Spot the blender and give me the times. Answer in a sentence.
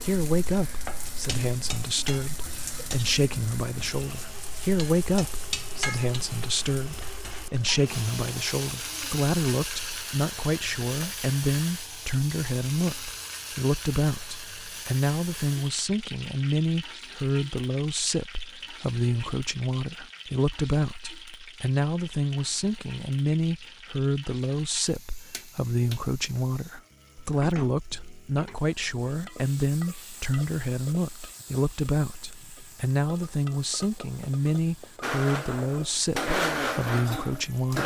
You can hear the blender from 0.0 to 8.7 s and from 35.0 to 37.8 s.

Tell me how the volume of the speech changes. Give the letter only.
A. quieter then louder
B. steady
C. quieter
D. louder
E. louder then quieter
B.